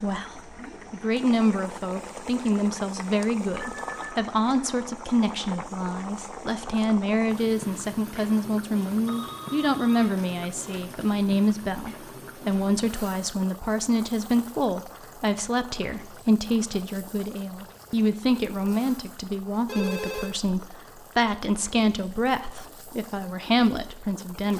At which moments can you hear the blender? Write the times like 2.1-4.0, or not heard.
not heard.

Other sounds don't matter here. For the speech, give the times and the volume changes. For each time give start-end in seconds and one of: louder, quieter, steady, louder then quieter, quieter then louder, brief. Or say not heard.
0.0-24.5 steady.